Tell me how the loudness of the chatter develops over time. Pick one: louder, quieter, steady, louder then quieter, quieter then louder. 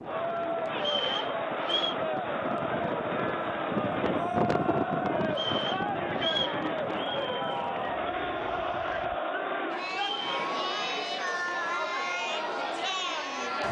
steady.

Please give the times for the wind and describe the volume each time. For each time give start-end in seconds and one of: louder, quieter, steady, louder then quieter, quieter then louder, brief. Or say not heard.
0.0-9.2 louder then quieter.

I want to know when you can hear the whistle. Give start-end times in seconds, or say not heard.
0.8-1.9, 5.3-6.6, 9.9-10.3.